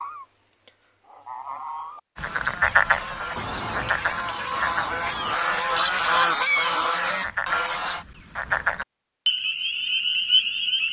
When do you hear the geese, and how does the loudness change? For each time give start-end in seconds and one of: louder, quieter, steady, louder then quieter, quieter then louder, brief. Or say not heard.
0.0-8.1 louder.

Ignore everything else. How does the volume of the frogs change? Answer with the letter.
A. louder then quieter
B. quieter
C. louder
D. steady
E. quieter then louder
E.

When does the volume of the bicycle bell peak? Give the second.
5 s.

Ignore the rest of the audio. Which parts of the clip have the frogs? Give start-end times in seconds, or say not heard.
2.1-10.8.